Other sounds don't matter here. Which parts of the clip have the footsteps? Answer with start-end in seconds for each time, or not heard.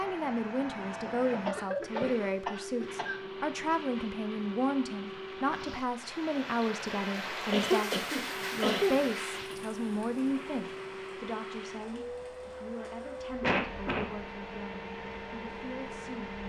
not heard.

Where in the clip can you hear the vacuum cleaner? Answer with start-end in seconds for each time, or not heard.
0.0-5.8, 8.2-16.4.